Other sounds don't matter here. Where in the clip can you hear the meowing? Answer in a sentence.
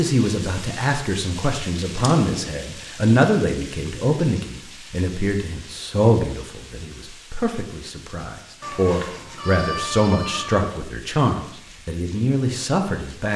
You can hear the meowing from 1.9 to 2.6 s and from 8.6 to 10.7 s.